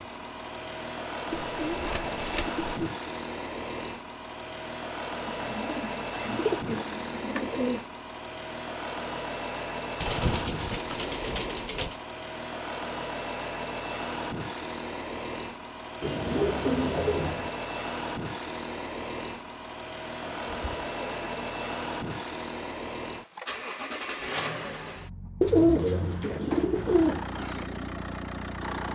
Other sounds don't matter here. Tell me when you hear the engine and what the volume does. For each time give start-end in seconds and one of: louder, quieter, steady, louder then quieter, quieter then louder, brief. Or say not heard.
0.0-28.9 steady.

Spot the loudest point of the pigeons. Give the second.
26 s.